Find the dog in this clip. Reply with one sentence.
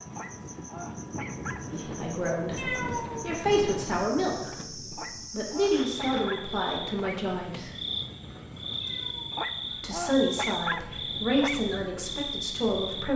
The dog can be heard from 0.1 to 1.8 s, from 4.9 to 7.2 s and from 9.3 to 11.6 s.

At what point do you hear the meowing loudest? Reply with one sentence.
The volume of the meowing peaks at 3 seconds.